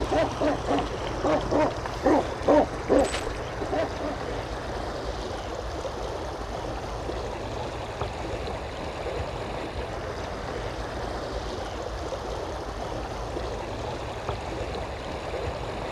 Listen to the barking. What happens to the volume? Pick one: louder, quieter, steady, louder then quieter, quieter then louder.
louder then quieter.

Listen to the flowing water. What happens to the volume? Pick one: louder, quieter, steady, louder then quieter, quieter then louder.
steady.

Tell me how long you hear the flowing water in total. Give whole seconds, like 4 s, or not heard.
16 s.